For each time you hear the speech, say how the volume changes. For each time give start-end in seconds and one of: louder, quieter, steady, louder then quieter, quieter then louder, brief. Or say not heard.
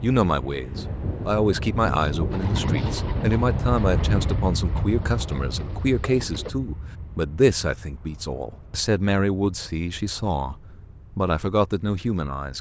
0.0-12.5 steady.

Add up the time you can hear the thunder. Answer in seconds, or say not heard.
4 s.